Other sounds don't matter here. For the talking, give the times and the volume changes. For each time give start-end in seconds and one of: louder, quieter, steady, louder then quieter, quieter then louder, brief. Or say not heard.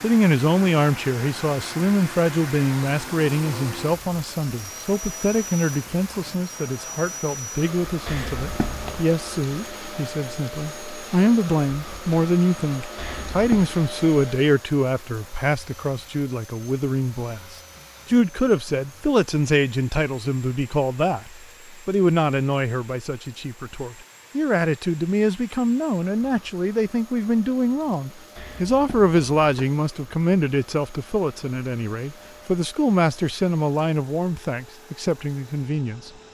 0.0-36.1 steady.